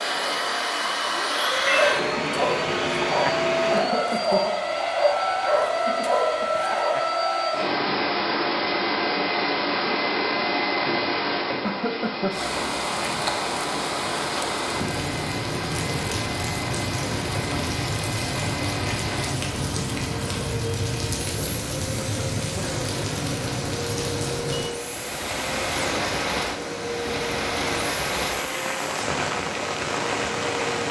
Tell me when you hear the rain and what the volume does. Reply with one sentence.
You can hear the rain from 12.3 to 30.8 s, at a steady volume.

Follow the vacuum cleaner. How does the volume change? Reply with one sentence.
The loudness of the vacuum cleaner goes down.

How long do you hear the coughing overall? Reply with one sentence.
The coughing can be heard for 2 seconds in total.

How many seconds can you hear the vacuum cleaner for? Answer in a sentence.
The vacuum cleaner can be heard for 31 seconds in total.